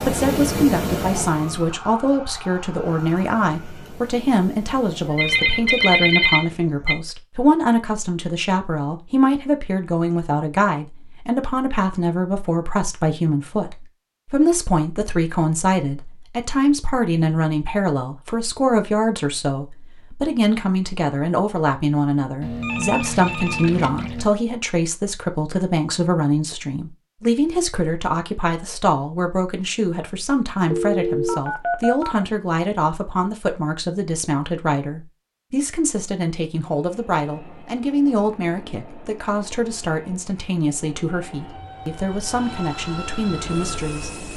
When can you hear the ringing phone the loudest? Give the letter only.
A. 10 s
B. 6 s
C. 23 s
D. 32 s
B.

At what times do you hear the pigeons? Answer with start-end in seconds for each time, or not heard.
not heard.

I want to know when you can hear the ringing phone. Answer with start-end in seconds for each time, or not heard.
5.0-7.0, 22.4-24.3, 30.7-32.2.